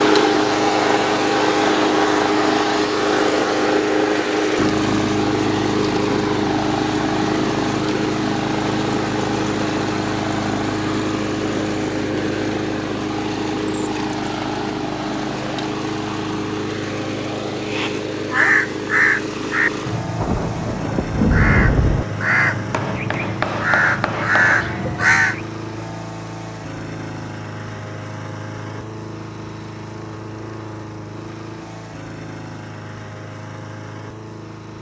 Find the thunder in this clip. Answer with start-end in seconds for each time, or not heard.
20.2-22.1.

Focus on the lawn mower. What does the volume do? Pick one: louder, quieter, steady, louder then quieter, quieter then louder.
quieter.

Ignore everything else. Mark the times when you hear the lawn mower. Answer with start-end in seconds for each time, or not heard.
0.0-34.7.